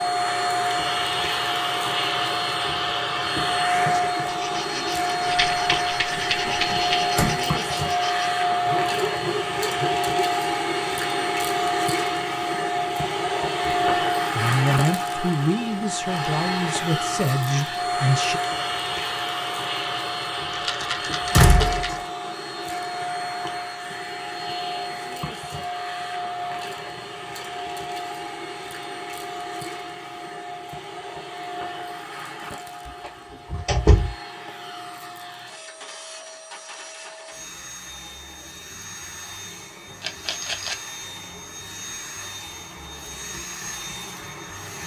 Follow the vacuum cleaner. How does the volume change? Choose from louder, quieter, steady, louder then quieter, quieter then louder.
quieter.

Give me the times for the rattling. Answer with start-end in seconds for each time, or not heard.
5.2-7.2, 20.5-22.0, 40.0-40.8.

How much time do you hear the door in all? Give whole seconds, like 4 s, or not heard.
3 s.